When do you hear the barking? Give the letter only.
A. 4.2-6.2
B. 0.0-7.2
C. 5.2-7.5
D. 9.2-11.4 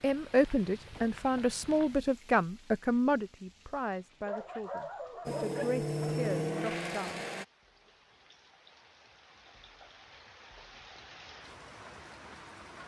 A.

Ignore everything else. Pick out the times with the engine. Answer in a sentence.
The engine can be heard from 5.2 to 7.5 s.